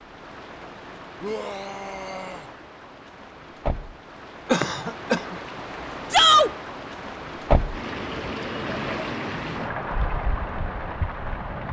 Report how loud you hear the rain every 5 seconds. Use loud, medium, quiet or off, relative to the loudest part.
medium, loud, loud.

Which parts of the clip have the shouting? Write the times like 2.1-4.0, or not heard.
1.2-2.5, 6.1-6.5.